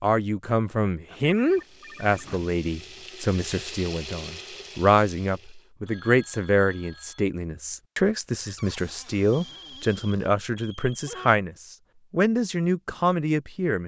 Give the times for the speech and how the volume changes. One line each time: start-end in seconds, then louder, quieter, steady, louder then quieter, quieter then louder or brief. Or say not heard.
0.0-13.8 steady.